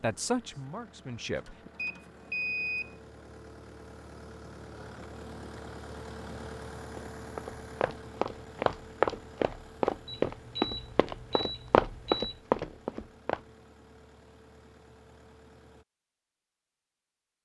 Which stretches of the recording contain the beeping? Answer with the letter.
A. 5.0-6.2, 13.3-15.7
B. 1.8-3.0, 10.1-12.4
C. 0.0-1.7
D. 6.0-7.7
B.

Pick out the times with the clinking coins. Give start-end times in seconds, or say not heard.
not heard.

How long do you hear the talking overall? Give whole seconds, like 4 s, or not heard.
2 s.